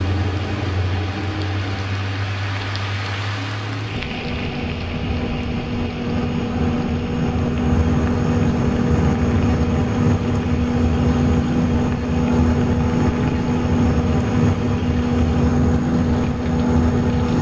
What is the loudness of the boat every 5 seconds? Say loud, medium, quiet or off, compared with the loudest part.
medium, loud, loud, loud.